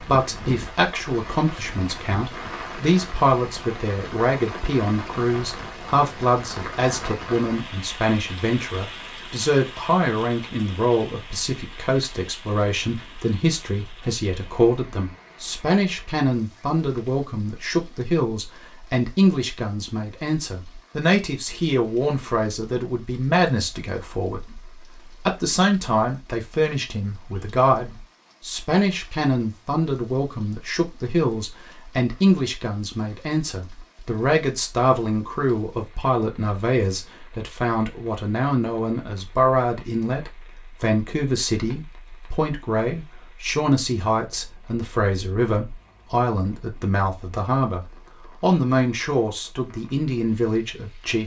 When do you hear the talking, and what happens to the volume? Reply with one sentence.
You can hear the talking from 0.0 to 51.2 s, at a steady volume.